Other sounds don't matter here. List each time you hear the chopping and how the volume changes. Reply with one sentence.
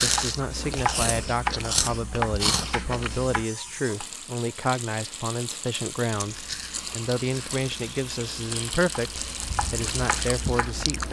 You can hear the chopping from 0.0 to 4.0 s, getting quieter; and briefly from 8.9 to 11.0 s.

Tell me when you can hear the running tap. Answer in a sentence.
You can hear the running tap from 0.2 to 10.8 s.